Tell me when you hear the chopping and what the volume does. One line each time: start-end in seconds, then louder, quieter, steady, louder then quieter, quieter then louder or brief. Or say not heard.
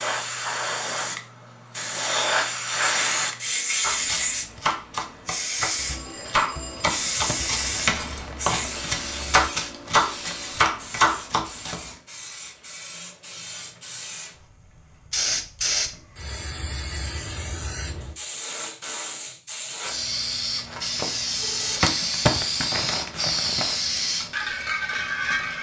3.8-11.8 louder.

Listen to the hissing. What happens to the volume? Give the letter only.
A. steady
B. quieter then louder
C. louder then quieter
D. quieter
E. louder
B.